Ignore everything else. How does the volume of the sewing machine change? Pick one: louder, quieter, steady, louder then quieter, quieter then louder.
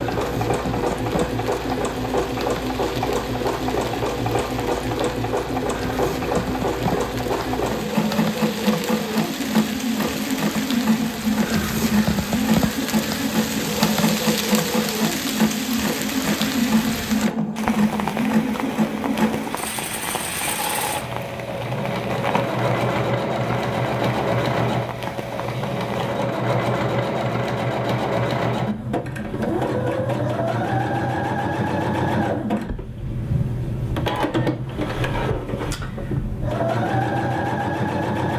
steady.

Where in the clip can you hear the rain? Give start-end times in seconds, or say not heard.
0.0-26.1.